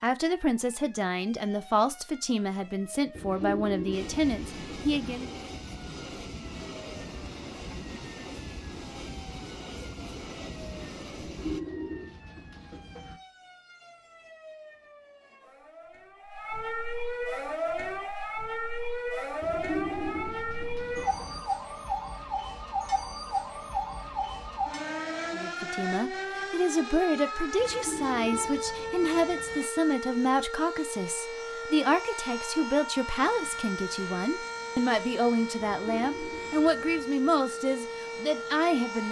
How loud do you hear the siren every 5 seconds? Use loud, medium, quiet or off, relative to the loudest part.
quiet, quiet, quiet, loud, loud, loud, loud, loud.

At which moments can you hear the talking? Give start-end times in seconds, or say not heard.
0.0-5.3, 25.4-39.0.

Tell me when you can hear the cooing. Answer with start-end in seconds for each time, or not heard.
3.1-5.2, 11.2-13.2, 19.4-21.4, 27.6-29.6, 35.6-37.1.